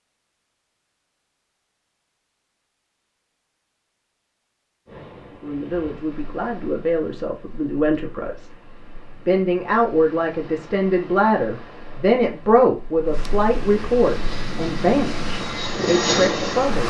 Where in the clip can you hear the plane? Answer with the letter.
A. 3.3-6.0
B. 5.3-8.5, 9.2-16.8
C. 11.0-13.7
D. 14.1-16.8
D.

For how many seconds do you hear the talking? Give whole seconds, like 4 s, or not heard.
11 s.